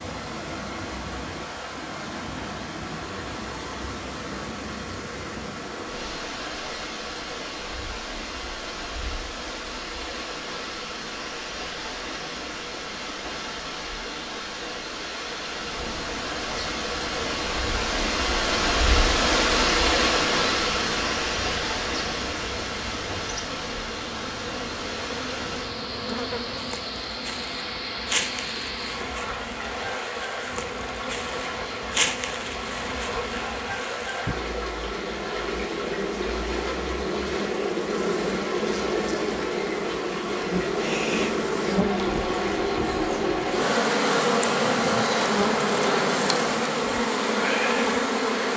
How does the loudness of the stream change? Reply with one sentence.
The loudness of the stream goes up, then down.